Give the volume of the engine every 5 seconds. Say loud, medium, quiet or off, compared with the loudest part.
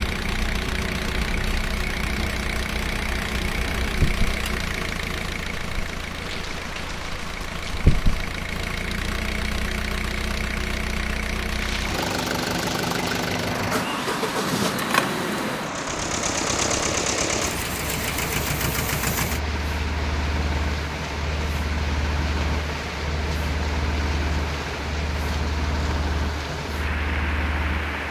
loud, medium, loud, loud, medium, medium.